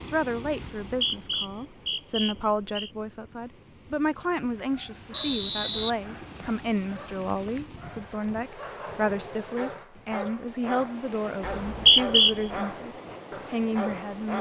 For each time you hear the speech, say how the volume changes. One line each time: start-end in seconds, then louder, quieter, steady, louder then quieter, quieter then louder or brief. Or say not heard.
0.1-14.3 steady.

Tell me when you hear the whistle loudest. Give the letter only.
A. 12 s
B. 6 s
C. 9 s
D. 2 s
A.